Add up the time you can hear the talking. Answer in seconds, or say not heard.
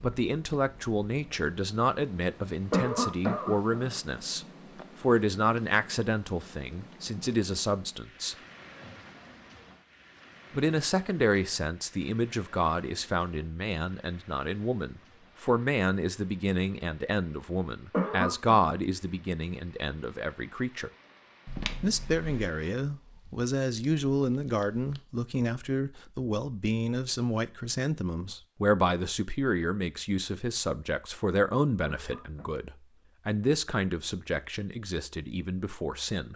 33 s.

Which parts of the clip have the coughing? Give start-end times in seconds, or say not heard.
2.7-3.9, 17.9-18.6, 31.9-32.5.